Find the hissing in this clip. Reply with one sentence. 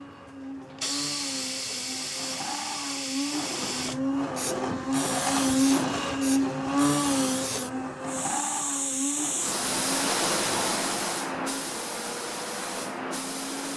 The hissing can be heard from 0.0 to 13.7 s.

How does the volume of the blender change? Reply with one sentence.
The loudness of the blender goes up, then down.